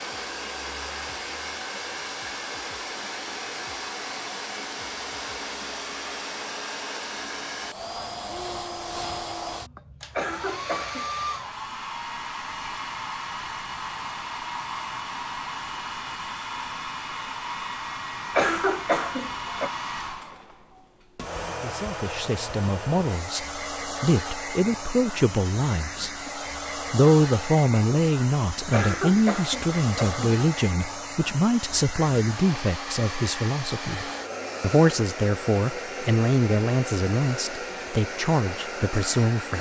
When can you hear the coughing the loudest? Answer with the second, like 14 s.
19 s.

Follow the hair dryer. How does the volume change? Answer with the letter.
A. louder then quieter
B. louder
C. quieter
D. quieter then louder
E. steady
E.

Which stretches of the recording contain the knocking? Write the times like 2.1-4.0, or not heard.
not heard.